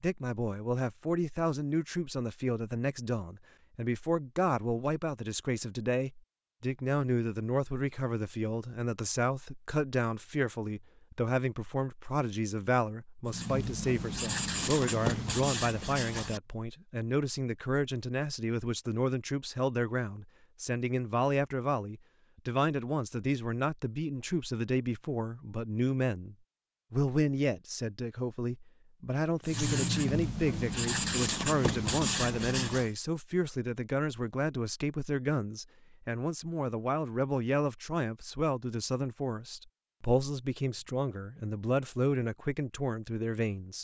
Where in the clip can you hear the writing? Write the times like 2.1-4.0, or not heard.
13.2-16.4, 29.4-32.9.